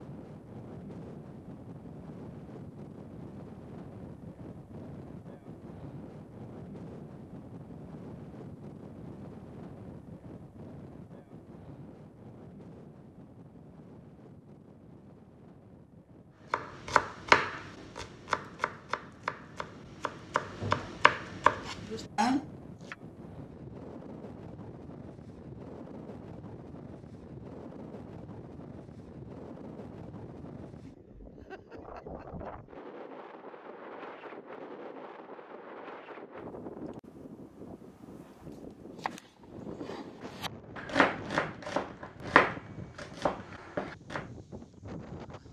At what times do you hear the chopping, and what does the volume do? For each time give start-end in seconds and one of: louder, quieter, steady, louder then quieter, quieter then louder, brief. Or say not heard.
16.5-22.9 quieter then louder
38.2-44.2 louder then quieter.